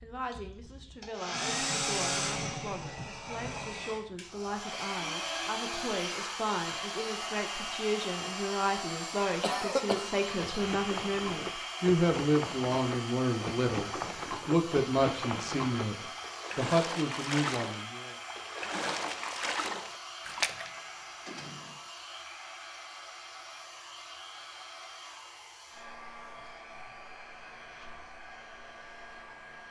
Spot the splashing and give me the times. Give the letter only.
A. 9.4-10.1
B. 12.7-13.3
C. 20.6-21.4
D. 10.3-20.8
D.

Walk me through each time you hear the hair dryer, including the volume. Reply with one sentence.
The hair dryer can be heard from 0.0 to 29.6 s, getting quieter.